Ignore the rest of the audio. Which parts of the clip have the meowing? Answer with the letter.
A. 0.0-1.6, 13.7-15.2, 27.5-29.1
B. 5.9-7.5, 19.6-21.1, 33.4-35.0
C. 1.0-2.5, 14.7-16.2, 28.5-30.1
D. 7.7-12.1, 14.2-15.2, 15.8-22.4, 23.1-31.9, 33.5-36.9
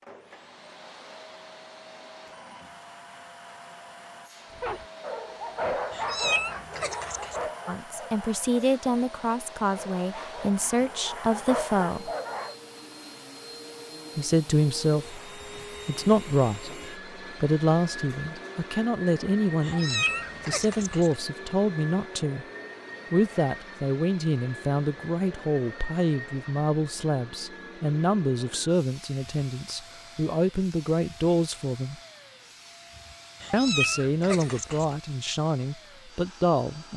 B.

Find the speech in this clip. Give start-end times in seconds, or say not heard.
7.7-12.1, 14.2-15.2, 15.8-22.4, 23.1-31.9, 33.5-36.9.